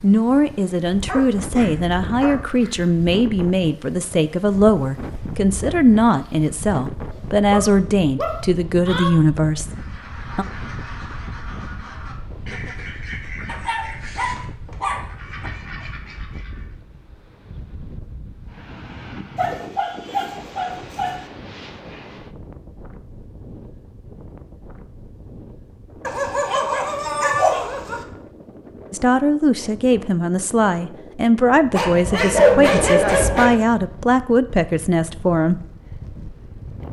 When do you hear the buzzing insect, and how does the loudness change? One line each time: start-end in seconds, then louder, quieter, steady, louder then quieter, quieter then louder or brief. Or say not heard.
not heard.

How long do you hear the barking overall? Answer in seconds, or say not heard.
11 s.